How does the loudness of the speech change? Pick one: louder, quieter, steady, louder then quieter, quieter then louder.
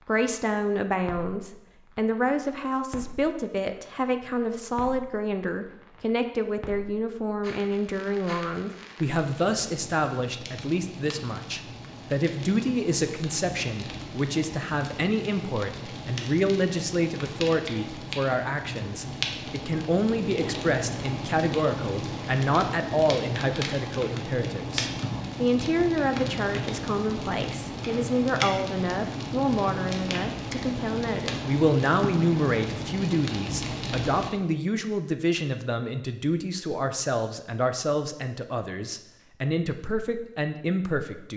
steady.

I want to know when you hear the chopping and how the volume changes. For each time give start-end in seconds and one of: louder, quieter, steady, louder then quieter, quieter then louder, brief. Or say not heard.
not heard.